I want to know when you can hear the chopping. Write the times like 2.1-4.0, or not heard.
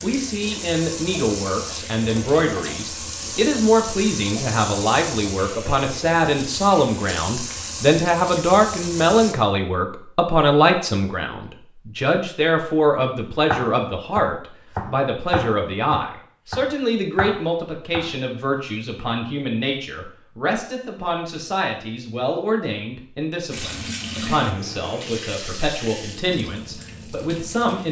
13.5-18.1.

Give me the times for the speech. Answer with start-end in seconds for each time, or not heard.
0.0-27.8.